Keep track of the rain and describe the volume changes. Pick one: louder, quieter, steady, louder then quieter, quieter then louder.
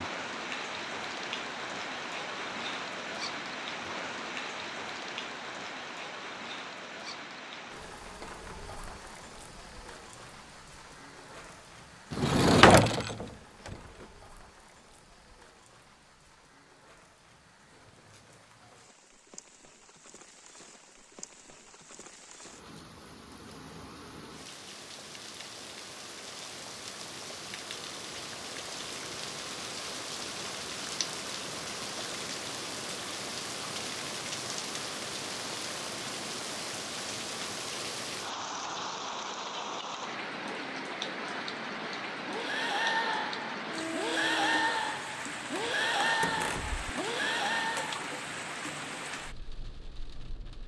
quieter then louder.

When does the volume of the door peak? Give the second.
13 s.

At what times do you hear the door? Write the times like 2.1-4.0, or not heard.
12.1-13.8, 46.2-46.9.